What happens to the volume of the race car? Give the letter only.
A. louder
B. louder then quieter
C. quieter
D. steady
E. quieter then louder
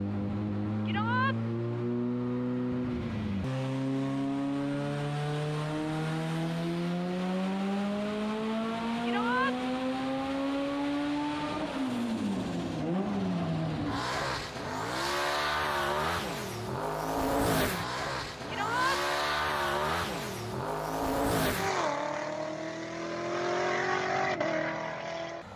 D.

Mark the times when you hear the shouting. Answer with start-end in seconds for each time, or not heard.
0.8-1.4, 9.0-9.6, 18.4-19.0.